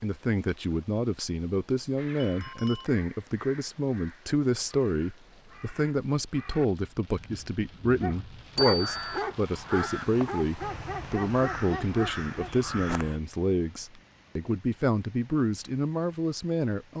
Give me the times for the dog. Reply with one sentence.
The dog can be heard from 8.0 to 12.6 s.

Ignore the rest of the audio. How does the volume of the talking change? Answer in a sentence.
The loudness of the talking stays about the same.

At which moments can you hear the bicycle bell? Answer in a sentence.
You can hear the bicycle bell from 2.1 to 2.9 s and from 8.6 to 9.2 s.